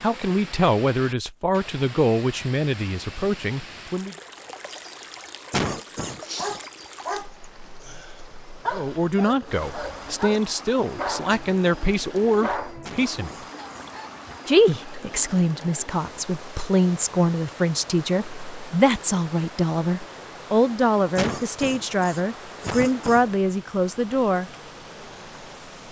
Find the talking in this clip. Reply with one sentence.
You can hear the talking from 0.0 to 4.2 s, from 8.7 to 13.3 s and from 14.4 to 24.5 s.